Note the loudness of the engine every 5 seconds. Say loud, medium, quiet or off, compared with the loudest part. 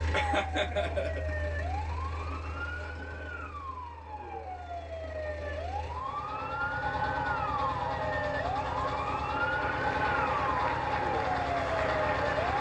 medium, loud, loud.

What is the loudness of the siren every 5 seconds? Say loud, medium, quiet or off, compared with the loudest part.
medium, loud, loud.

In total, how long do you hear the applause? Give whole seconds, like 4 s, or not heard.
3 s.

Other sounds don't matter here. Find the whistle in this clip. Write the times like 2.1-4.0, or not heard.
not heard.